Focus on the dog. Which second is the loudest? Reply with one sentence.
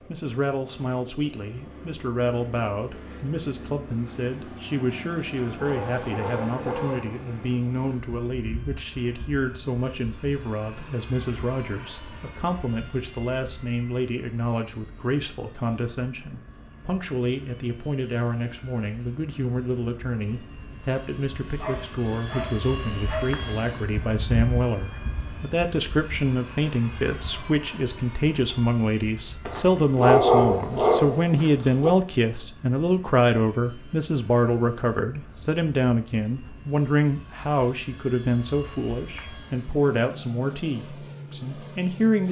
The loudest moment of the dog is at 30 seconds.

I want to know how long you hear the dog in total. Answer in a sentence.
You can hear the dog for 6 seconds altogether.